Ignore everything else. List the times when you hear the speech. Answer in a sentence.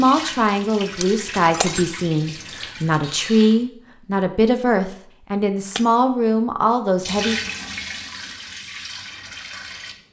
You can hear the speech from 0.0 to 7.4 s.